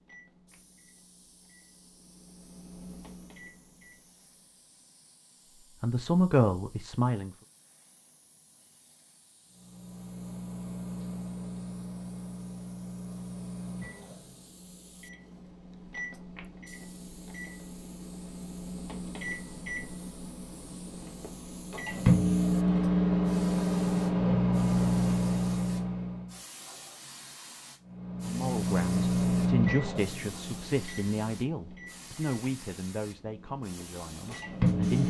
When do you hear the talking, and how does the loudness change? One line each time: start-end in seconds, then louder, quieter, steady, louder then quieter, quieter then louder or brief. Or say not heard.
5.8-7.3 brief
28.2-35.0 quieter.